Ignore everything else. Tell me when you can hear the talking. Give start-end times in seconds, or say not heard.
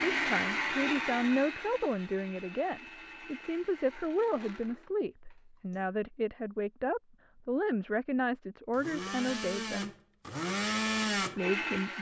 0.0-9.9, 11.3-11.9.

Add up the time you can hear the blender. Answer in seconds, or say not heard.
9 s.